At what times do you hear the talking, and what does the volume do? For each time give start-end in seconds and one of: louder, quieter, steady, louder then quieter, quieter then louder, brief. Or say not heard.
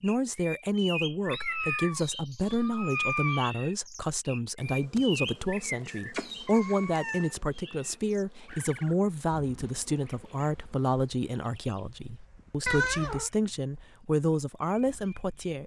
0.0-15.6 steady.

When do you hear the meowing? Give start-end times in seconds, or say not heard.
1.3-3.5, 6.2-7.3, 12.7-13.3.